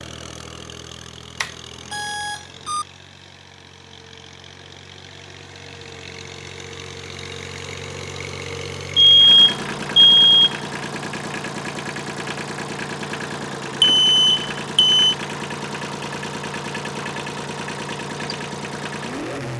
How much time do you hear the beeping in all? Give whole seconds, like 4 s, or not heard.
4 s.